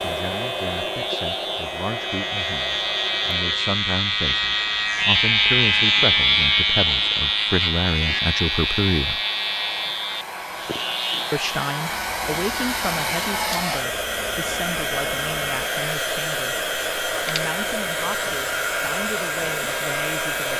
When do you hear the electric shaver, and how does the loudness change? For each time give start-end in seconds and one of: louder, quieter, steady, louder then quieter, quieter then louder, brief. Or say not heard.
0.0-20.5 louder then quieter.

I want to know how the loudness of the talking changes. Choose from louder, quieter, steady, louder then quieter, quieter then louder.
louder then quieter.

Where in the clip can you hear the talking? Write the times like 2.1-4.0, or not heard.
0.0-9.2, 11.3-20.5.